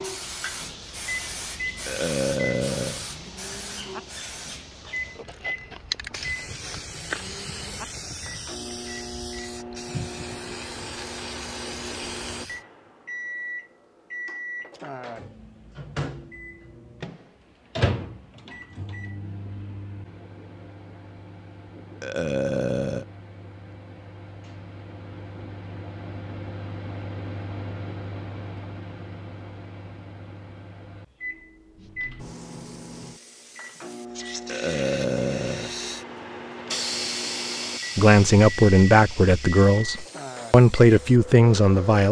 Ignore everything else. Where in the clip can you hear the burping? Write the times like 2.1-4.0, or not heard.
1.9-3.0, 22.0-23.1, 34.5-35.8.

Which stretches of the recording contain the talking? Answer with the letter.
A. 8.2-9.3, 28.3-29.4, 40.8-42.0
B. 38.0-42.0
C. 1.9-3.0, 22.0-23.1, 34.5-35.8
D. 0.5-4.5
B.